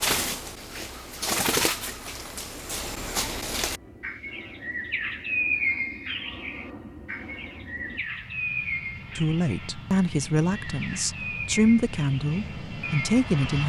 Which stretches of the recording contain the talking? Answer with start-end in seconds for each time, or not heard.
9.2-13.6.